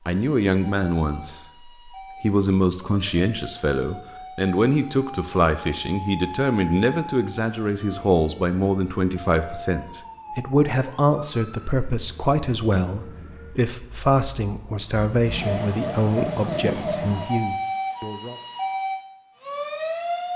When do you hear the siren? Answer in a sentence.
You can hear the siren from 0.1 to 20.3 s.